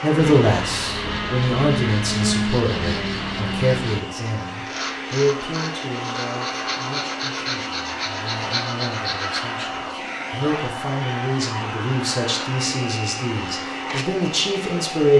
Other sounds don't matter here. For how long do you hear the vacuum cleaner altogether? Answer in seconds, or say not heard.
15 s.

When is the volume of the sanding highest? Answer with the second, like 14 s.
2 s.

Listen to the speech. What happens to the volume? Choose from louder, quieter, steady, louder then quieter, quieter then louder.
quieter then louder.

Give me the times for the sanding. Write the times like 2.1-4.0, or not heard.
0.1-9.8.